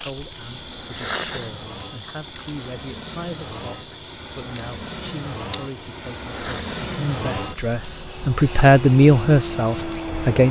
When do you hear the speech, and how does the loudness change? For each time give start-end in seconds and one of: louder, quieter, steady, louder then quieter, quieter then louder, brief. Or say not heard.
0.0-10.4 louder.